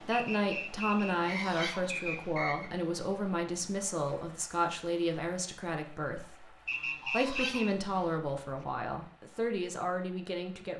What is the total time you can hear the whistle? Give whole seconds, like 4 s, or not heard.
4 s.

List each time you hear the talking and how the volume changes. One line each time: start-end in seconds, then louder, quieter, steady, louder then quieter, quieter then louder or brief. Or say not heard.
0.0-10.7 steady.